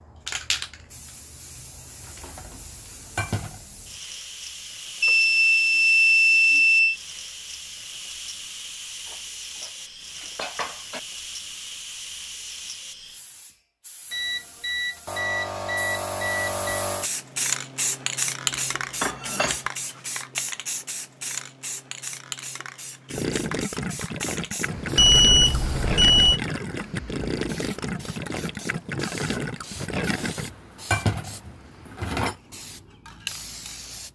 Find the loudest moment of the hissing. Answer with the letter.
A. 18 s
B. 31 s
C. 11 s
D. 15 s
A.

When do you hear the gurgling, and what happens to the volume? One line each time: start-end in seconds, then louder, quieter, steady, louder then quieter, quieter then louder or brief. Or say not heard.
23.1-30.5 steady.